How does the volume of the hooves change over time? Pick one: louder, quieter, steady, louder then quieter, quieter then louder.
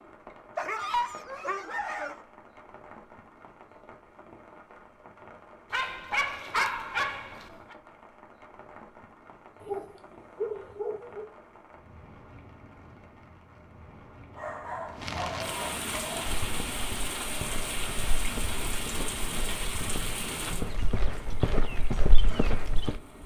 louder.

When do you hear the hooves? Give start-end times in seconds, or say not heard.
15.9-23.0.